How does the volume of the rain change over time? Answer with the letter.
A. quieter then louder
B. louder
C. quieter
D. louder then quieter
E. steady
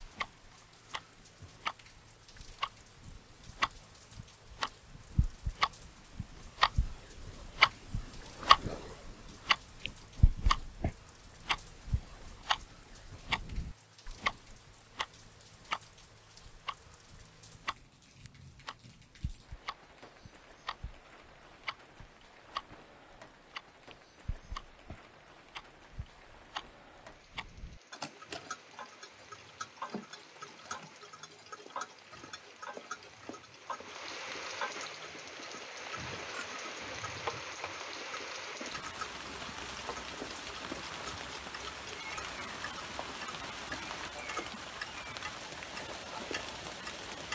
B.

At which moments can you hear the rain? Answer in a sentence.
The rain can be heard from 0.0 to 47.3 s.